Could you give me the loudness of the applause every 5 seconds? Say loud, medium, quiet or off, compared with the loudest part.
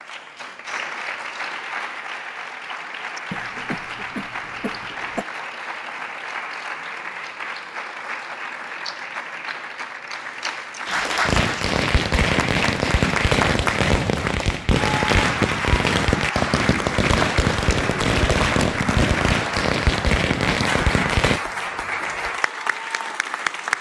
medium, medium, loud, loud, loud.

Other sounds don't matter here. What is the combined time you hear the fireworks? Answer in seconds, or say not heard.
10 s.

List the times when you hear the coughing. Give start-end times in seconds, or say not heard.
3.3-5.2.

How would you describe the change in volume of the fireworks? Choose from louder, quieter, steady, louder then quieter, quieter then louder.
steady.